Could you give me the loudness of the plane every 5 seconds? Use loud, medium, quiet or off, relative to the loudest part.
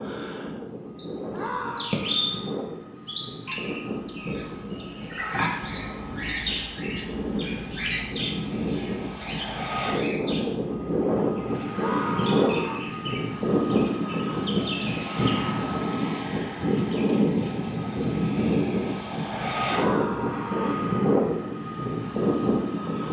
medium, medium, loud, loud, loud.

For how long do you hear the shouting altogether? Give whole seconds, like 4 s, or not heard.
3 s.